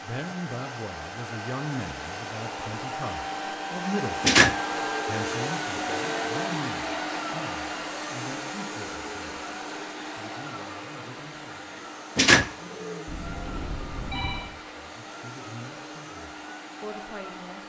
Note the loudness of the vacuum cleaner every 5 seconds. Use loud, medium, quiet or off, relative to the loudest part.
loud, loud, medium, medium.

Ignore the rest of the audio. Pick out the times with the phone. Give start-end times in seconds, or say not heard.
5.2-6.5, 13.1-14.5.